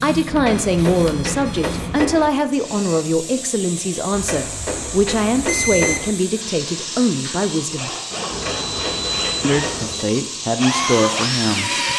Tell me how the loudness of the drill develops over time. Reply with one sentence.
The volume of the drill goes up.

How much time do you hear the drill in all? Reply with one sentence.
You can hear the drill for 6 seconds altogether.